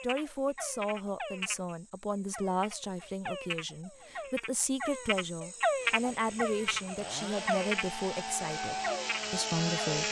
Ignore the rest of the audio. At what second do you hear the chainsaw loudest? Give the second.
10 s.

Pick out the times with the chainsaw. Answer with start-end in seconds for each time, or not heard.
5.8-10.0.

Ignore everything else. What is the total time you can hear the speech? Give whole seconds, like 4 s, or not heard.
10 s.